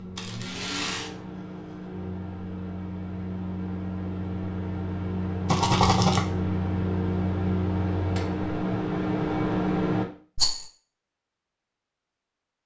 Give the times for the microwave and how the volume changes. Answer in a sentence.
The microwave can be heard from 0.0 to 10.1 s, getting louder.